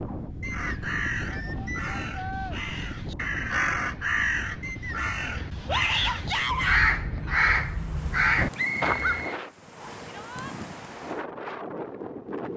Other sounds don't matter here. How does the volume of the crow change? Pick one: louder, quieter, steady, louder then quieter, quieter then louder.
louder.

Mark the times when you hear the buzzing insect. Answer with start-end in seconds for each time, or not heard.
not heard.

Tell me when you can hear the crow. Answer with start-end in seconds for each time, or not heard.
0.5-9.2.